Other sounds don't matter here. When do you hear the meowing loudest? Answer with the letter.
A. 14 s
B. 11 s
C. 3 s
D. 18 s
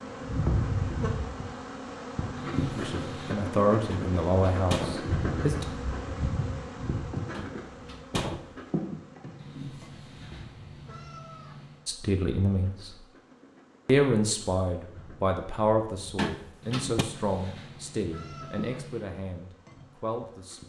C.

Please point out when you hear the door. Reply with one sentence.
You can hear the door from 3.9 to 5.0 s, from 7.3 to 8.5 s and from 16.1 to 17.1 s.